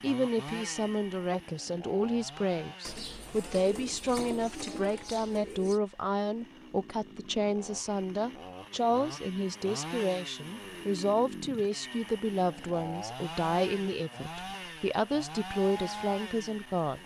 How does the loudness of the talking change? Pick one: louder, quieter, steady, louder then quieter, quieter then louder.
steady.